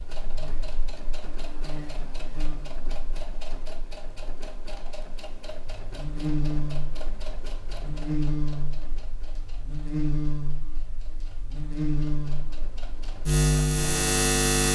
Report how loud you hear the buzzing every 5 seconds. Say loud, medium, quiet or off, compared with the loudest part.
quiet, medium, loud.